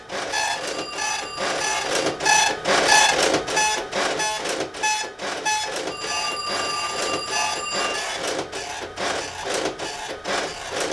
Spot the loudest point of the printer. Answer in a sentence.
The loudest moment of the printer is at 3 seconds.